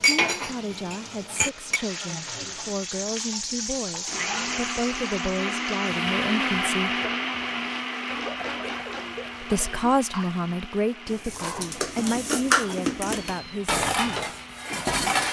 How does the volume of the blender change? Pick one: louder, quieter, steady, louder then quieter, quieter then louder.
louder then quieter.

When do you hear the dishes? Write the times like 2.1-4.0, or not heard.
0.0-1.8, 11.1-15.2.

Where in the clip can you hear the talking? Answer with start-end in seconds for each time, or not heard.
0.0-6.9, 9.4-14.3.